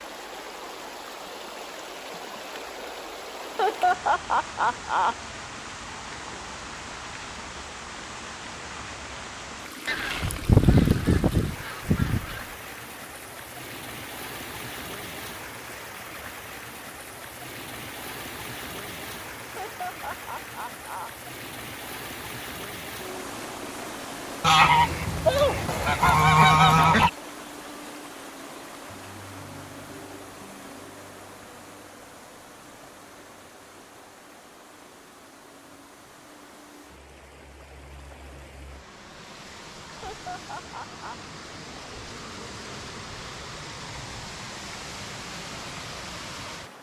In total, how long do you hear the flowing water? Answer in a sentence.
You can hear the flowing water for 47 seconds altogether.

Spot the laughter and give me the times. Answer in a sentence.
You can hear the laughter from 3.4 to 5.2 s, from 19.4 to 21.1 s and from 39.9 to 41.1 s.